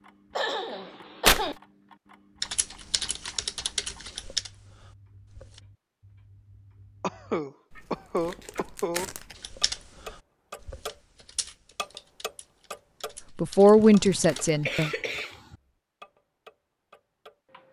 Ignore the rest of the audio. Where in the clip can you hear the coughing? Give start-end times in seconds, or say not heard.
0.3-1.6, 7.0-9.1, 13.8-15.6.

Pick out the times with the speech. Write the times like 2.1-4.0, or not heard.
13.3-14.9.